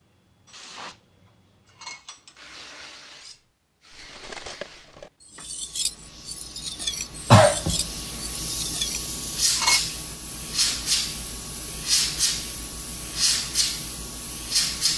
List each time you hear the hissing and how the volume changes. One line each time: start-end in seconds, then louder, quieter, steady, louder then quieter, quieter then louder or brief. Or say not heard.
0.2-14.9 louder.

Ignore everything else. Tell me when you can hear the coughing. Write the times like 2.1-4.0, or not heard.
7.3-7.8.